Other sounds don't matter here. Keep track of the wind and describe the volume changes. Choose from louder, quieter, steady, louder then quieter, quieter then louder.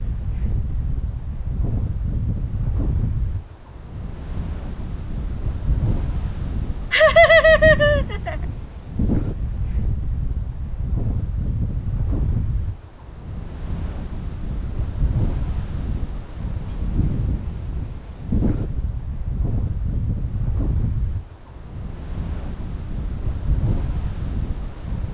steady.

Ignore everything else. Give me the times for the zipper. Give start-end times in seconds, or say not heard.
not heard.